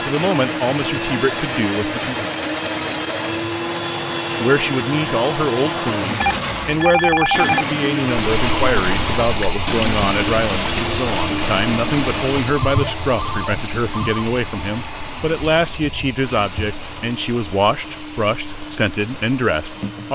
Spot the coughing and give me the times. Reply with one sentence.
You can't hear the coughing here.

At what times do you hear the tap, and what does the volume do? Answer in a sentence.
You can hear the tap from 8.1 to 20.0 s, getting quieter.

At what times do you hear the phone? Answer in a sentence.
You can hear the phone from 6.2 to 7.7 s and from 12.6 to 14.3 s.